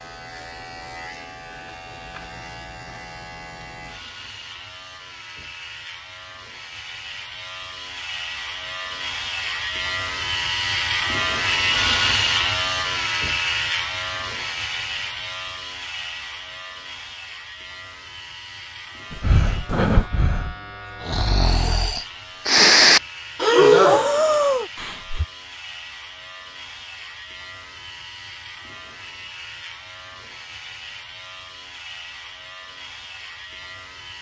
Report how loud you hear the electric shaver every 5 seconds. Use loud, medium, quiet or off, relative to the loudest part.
quiet, medium, loud, quiet, quiet, quiet, quiet.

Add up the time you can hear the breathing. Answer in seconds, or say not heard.
6 s.